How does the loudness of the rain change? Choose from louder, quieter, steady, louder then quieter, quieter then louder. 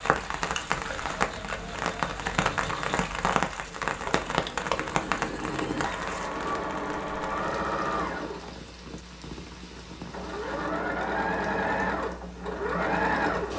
quieter.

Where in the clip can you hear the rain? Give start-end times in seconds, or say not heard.
0.0-10.8.